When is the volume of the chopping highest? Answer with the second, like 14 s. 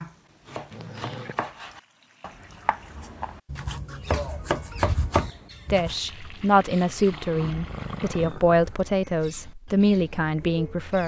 5 s.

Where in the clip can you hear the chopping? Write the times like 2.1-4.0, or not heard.
0.0-6.0.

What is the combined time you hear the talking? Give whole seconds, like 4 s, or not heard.
5 s.